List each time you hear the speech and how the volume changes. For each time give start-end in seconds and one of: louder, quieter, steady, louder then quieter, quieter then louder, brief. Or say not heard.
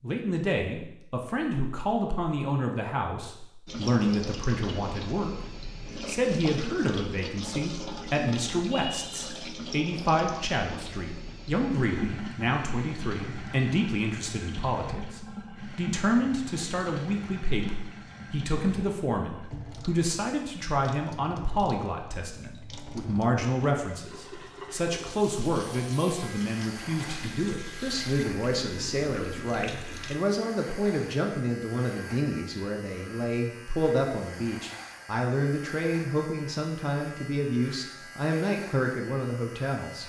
0.0-40.0 steady.